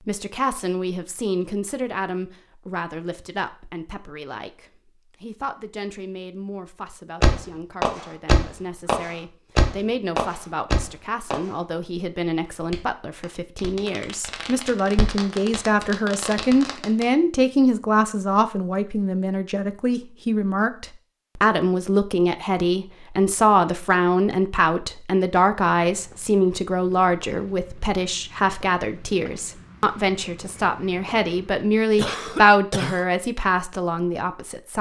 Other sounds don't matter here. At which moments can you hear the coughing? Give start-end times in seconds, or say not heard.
31.9-33.0.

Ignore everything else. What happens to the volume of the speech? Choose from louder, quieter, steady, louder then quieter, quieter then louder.
louder.